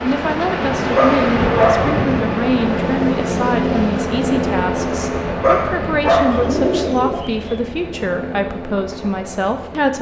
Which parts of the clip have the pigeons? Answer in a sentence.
You can hear the pigeons from 6.2 to 7.6 s.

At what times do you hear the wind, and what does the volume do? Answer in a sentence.
You can hear the wind from 0.0 to 6.9 s, getting quieter.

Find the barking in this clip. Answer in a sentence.
The barking can be heard from 0.9 to 2.0 s and from 5.4 to 6.7 s.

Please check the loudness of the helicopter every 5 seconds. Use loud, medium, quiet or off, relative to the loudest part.
loud, medium.